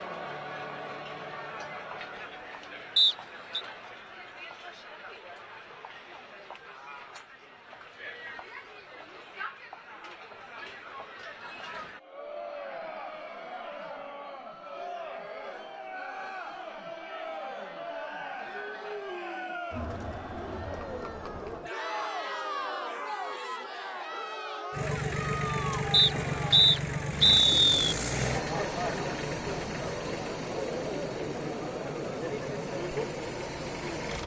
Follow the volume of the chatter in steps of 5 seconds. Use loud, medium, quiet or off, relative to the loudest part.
medium, medium, medium, loud, loud, loud, loud.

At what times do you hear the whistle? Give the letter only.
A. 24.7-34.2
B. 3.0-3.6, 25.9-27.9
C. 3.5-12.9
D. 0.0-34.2
B.